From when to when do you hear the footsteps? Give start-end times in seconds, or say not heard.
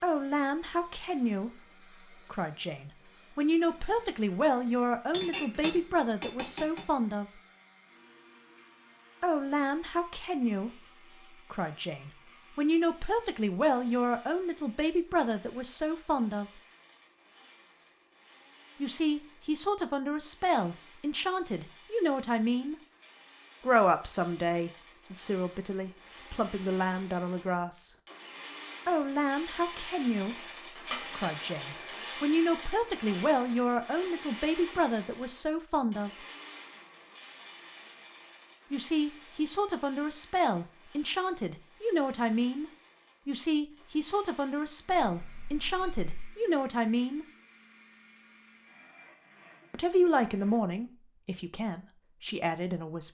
not heard.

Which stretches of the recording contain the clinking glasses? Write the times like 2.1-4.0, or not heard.
5.1-6.8, 30.8-31.3, 44.9-46.0.